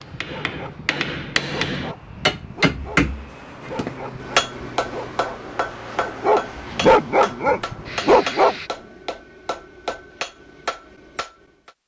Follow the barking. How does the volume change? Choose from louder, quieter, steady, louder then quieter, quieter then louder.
louder.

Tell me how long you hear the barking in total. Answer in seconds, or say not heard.
8 s.